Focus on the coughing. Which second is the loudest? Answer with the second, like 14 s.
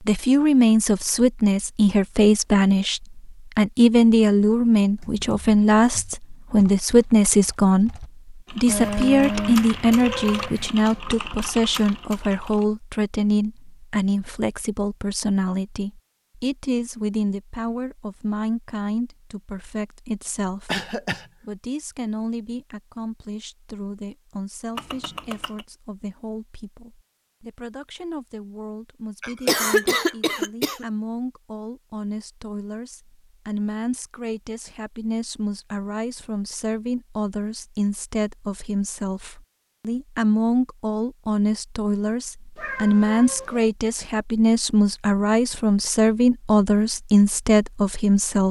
30 s.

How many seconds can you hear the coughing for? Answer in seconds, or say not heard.
2 s.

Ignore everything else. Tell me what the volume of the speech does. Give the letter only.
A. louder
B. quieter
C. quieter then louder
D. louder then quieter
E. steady
C.